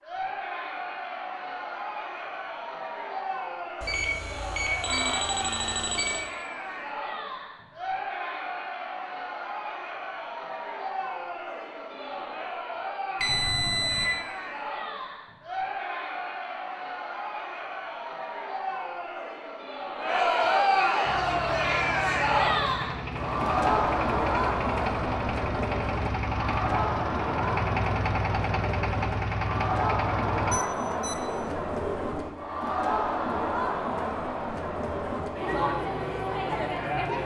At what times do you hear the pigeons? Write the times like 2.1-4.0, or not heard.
31.2-32.3.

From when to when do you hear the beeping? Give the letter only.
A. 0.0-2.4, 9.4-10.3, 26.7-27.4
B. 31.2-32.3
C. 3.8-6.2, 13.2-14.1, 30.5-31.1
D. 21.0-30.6
C.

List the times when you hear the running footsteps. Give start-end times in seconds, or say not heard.
not heard.